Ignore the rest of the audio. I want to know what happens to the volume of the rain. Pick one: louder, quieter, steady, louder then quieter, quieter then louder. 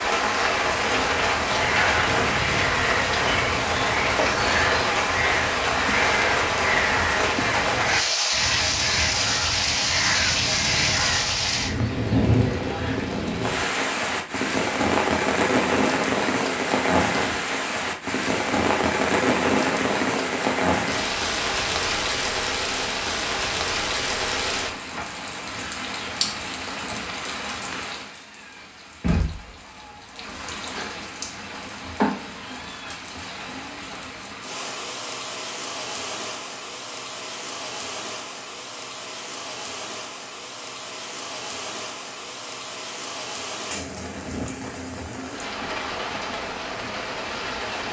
quieter.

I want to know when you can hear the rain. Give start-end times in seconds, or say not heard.
0.0-47.8.